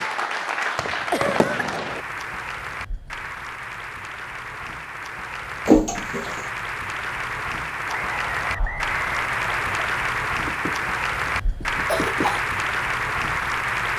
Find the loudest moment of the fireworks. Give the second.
1 s.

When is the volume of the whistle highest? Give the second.
9 s.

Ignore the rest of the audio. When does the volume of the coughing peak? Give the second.
6 s.